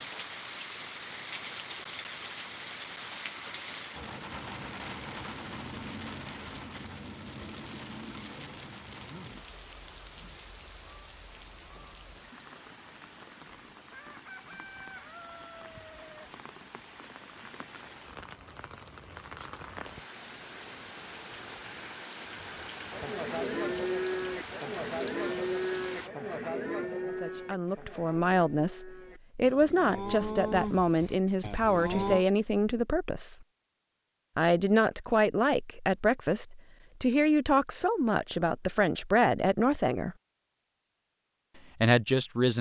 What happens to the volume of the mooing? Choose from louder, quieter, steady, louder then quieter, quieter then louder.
quieter then louder.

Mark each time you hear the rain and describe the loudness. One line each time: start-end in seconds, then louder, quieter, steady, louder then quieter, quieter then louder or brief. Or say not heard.
0.0-26.1 quieter then louder.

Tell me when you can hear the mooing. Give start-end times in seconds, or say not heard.
22.6-32.2.